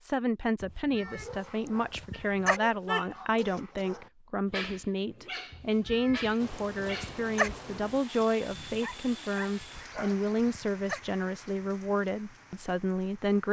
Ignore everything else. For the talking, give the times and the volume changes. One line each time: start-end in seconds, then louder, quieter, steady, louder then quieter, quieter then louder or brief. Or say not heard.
0.0-13.4 steady.